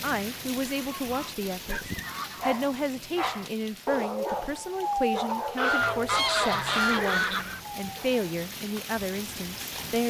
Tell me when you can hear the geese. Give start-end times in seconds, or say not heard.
0.8-2.5, 5.5-7.5.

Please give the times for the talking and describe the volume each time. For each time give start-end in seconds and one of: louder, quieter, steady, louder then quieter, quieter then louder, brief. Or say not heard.
0.0-10.0 steady.